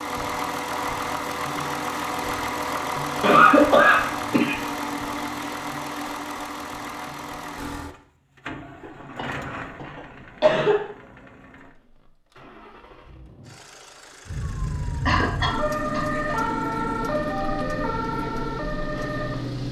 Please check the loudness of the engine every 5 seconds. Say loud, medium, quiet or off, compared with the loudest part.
loud, medium, quiet, quiet.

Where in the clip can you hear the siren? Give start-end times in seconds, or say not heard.
14.2-19.6.